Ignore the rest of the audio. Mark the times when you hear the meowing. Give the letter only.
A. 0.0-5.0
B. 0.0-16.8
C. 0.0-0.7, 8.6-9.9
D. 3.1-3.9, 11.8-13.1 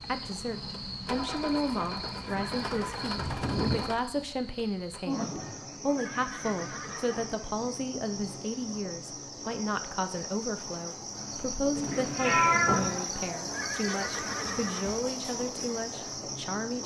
D.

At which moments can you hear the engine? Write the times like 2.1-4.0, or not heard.
0.0-5.0.